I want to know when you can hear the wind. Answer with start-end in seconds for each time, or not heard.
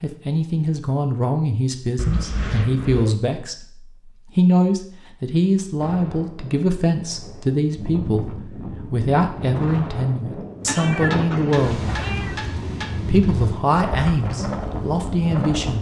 5.8-15.7.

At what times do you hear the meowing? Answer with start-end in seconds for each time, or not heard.
1.9-3.1, 10.7-12.4.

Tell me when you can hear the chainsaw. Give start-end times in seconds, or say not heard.
not heard.